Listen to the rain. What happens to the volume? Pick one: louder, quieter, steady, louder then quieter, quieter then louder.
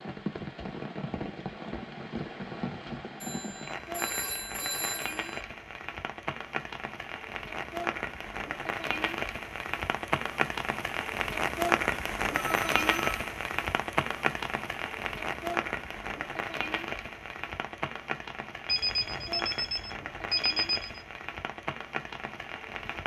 louder then quieter.